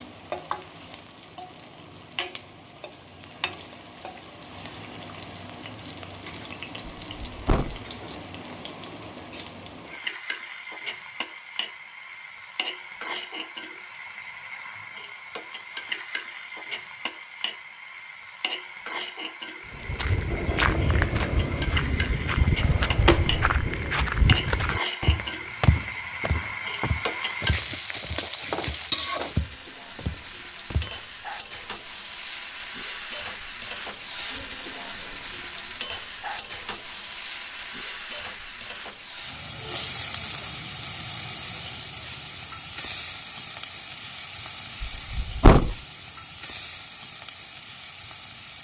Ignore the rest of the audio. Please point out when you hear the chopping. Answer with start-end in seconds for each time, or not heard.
not heard.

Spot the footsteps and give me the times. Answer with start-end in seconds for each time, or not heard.
19.7-30.9.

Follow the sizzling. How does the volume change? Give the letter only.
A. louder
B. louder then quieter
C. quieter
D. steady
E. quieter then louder
A.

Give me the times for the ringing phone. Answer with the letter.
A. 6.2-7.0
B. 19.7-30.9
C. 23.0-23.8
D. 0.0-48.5
C.